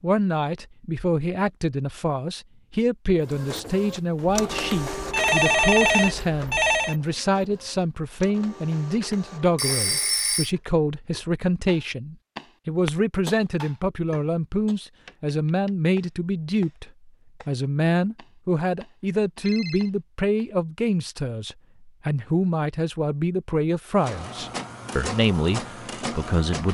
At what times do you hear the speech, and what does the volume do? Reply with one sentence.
The speech can be heard from 0.0 to 26.7 s, at a steady volume.